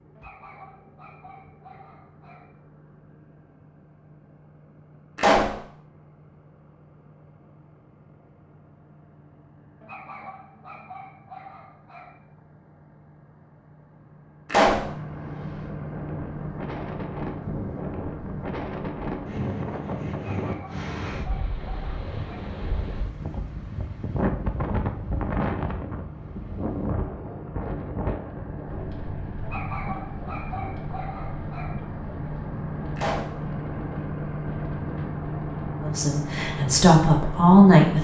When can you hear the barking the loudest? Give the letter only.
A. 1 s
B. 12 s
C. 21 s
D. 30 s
D.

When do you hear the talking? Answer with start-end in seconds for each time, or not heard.
35.8-38.0.